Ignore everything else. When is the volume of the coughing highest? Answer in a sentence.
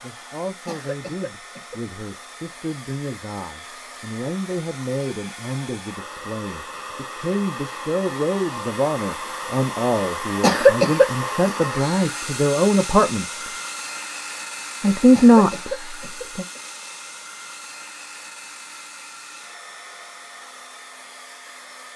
The volume of the coughing peaks at 11 seconds.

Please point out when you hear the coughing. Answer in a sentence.
The coughing can be heard from 0.7 to 1.8 s, from 10.4 to 11.1 s and from 15.2 to 16.6 s.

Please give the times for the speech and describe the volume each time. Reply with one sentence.
You can hear the speech from 0.0 to 13.5 s, getting louder; and briefly from 14.8 to 16.4 s.